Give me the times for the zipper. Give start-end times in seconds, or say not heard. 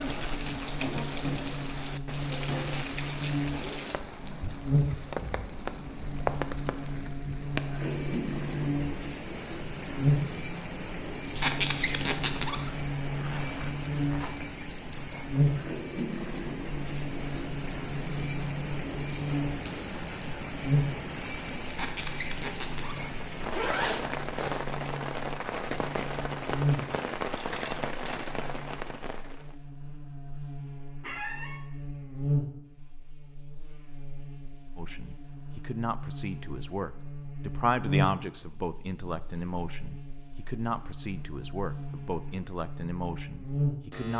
13.1-14.5, 23.4-24.6.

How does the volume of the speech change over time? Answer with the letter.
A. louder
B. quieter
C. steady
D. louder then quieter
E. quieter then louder
D.